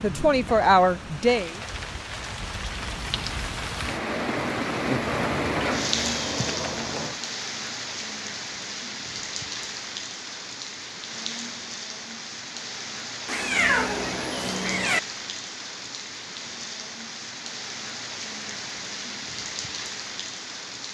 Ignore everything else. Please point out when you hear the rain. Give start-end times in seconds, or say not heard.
0.0-20.9.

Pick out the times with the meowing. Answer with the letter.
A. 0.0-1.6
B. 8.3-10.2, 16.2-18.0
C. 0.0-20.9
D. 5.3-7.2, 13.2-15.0
D.